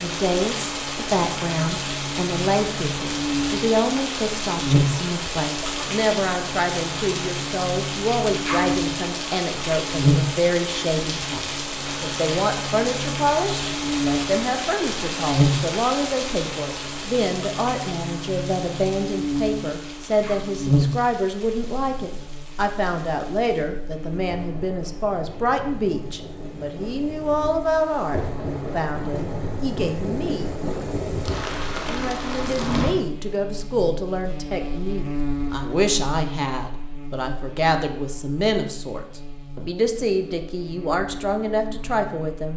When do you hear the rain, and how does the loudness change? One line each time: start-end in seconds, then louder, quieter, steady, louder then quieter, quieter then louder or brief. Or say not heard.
0.0-33.0 quieter then louder.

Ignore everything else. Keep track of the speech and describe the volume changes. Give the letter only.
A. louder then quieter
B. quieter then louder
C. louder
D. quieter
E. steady
E.